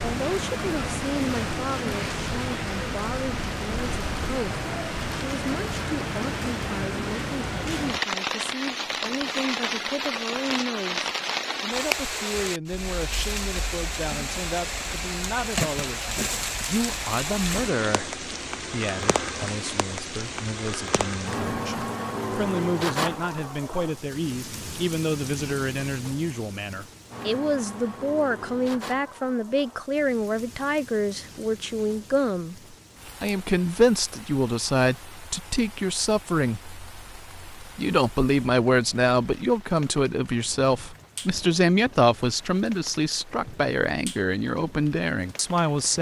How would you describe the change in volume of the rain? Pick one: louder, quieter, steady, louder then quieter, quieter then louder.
quieter.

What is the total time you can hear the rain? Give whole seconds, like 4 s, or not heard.
46 s.